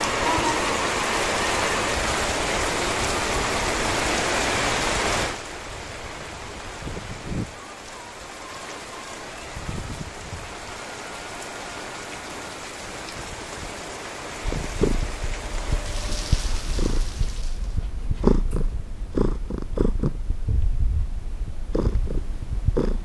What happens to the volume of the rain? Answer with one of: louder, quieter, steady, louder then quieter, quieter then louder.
quieter.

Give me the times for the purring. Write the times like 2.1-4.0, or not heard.
14.4-22.9.